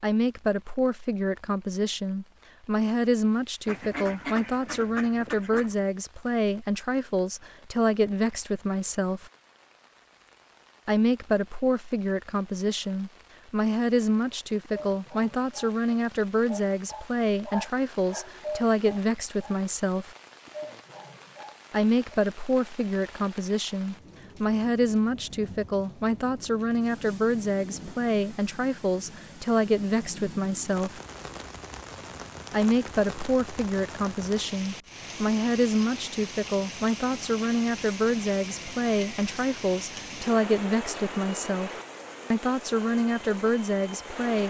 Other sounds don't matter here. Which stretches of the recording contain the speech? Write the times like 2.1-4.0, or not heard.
0.0-9.3, 10.8-20.1, 21.7-31.0, 32.5-41.7, 42.3-44.4.